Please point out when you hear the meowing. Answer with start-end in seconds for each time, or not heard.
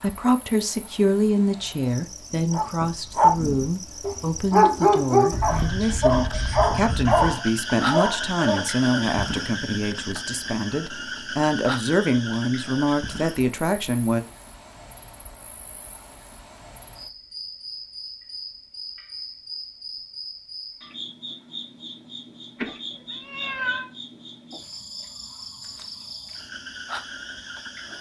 5.3-7.3, 22.6-23.9.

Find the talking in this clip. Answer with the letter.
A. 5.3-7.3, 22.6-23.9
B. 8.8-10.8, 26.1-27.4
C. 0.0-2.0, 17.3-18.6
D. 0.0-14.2
D.